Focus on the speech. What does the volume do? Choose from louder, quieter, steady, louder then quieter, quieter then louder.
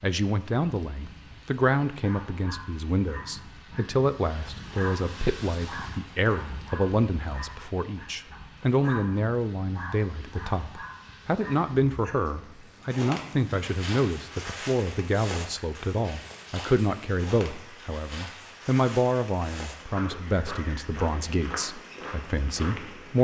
steady.